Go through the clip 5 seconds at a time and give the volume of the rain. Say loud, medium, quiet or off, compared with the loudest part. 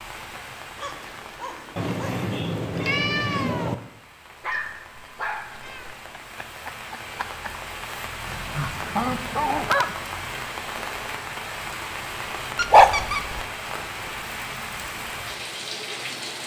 medium, loud, loud, loud.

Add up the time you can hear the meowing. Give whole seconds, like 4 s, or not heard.
5 s.